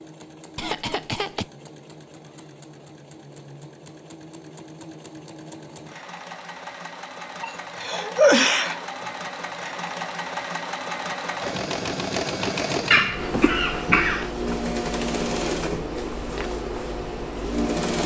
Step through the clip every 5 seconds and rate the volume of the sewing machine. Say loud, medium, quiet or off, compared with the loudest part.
quiet, medium, loud, loud.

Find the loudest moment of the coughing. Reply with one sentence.
The loudest moment of the coughing is at 8 seconds.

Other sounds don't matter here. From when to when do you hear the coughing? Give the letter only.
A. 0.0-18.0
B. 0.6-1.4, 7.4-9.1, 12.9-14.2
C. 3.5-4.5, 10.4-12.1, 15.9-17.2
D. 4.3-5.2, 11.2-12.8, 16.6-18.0
B.